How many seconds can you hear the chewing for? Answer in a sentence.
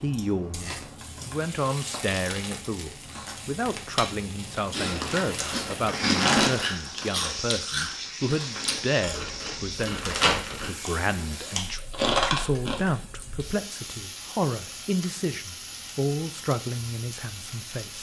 You can hear the chewing for 8 seconds altogether.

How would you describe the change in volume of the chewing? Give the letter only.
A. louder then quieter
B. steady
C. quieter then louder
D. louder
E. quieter
C.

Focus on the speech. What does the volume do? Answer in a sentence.
The loudness of the speech stays about the same.